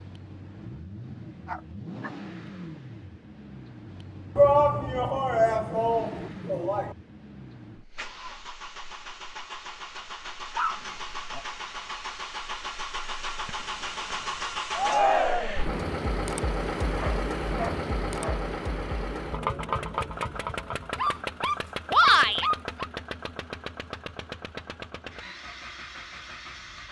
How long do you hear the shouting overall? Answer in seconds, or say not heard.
4 s.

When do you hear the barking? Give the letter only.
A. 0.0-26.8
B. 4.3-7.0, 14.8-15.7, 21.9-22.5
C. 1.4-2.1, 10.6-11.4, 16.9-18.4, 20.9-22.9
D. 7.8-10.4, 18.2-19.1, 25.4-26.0
C.